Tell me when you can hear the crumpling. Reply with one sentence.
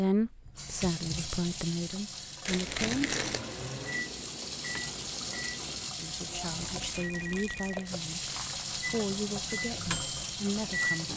The crumpling can be heard from 2.5 to 3.4 s and from 6.6 to 8.8 s.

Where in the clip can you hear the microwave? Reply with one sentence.
The microwave can be heard from 2.8 to 5.9 s and from 8.8 to 11.1 s.